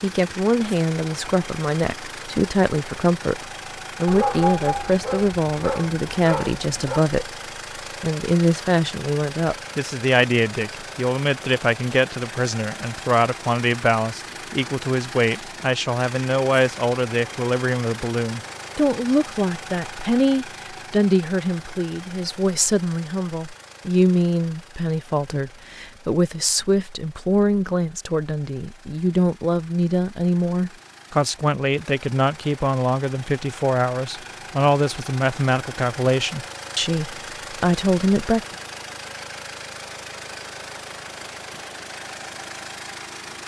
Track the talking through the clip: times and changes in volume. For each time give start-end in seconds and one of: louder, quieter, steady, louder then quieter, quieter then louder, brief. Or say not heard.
0.0-7.3 steady
8.0-38.4 steady.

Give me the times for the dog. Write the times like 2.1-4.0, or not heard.
4.0-7.0.